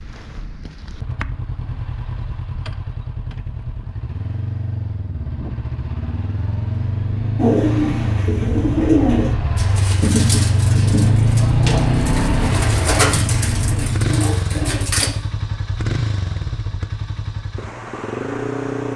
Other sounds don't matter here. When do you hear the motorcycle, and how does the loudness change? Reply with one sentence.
You can hear the motorcycle from 0.0 to 18.9 s, getting louder then quieter.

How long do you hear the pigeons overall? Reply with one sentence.
You can hear the pigeons for 8 seconds altogether.